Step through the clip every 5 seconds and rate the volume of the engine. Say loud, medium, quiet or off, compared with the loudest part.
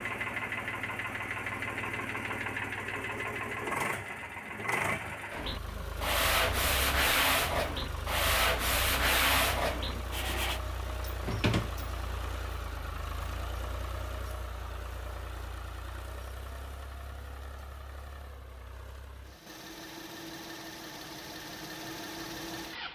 loud, medium, medium, quiet, medium.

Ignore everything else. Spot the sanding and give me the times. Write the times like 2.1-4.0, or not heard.
5.3-10.6.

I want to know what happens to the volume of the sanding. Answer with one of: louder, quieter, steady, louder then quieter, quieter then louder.
steady.